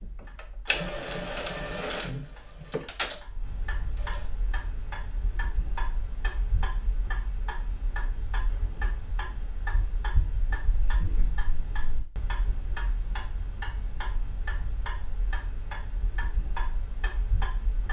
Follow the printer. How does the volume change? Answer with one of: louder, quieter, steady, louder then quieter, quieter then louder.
quieter.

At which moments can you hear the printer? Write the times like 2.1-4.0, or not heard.
0.0-4.3.